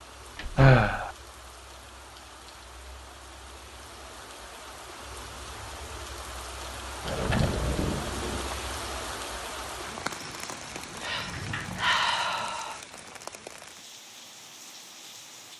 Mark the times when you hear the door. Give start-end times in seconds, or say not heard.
0.3-0.8, 7.0-8.6, 11.1-12.5.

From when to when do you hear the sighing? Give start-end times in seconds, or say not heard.
0.6-1.1, 11.0-12.8.